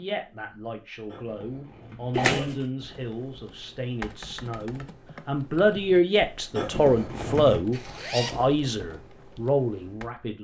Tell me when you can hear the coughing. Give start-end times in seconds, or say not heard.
1.1-2.5, 6.5-7.6.